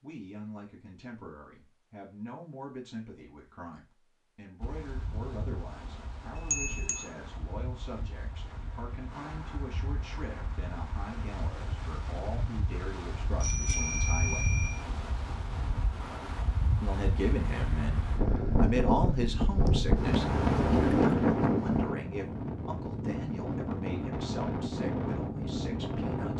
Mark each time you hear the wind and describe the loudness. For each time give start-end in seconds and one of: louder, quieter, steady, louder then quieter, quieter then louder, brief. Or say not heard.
4.6-26.3 louder then quieter.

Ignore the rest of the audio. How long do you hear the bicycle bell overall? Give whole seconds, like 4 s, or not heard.
3 s.